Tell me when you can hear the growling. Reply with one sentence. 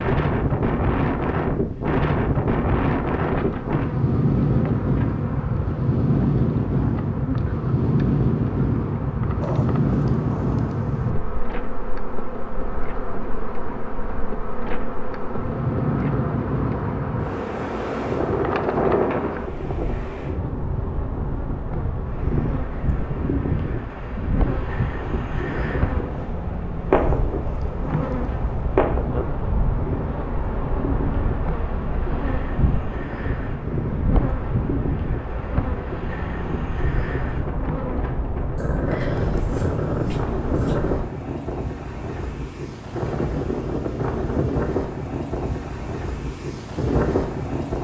You can hear the growling from 9.4 to 11.2 s, from 26.9 to 28.6 s and from 38.5 to 41.0 s.